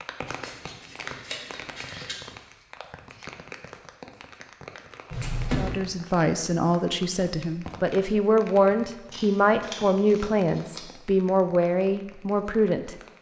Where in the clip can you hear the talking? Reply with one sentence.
The talking can be heard from 5.5 to 12.9 s.